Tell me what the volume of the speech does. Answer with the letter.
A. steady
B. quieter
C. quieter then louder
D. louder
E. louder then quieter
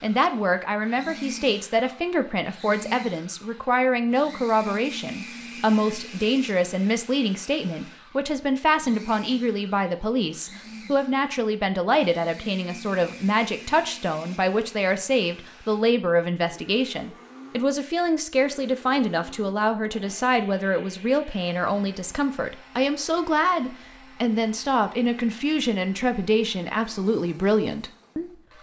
A.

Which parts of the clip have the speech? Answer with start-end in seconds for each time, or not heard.
0.0-28.3.